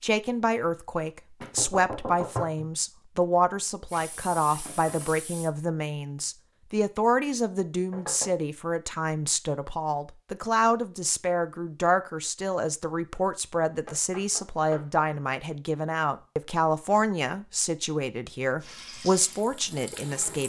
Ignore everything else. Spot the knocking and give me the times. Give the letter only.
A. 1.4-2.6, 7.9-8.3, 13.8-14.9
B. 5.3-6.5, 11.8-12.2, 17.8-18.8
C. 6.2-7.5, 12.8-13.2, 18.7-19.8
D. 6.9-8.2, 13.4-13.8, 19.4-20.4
A.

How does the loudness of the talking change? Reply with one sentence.
The loudness of the talking stays about the same.